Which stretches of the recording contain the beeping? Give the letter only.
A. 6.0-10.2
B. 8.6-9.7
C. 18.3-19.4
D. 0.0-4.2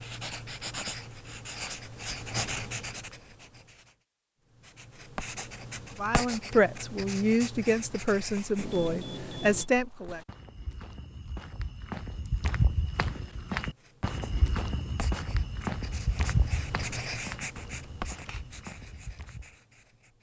B.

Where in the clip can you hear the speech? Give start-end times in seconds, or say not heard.
6.0-10.2.